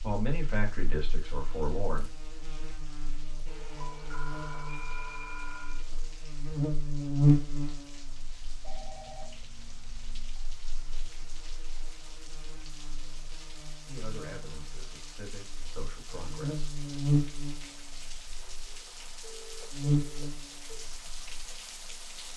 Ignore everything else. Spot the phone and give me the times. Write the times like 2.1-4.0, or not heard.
3.5-5.8, 8.6-10.4, 19.2-20.8.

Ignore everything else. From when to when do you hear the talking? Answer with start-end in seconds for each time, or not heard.
0.0-2.3, 13.8-16.7.